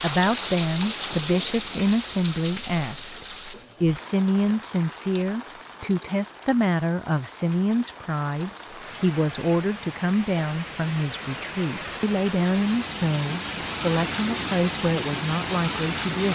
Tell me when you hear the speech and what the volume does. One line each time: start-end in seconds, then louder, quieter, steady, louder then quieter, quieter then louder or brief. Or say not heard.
0.0-16.3 steady.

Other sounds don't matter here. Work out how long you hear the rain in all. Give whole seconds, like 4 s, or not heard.
16 s.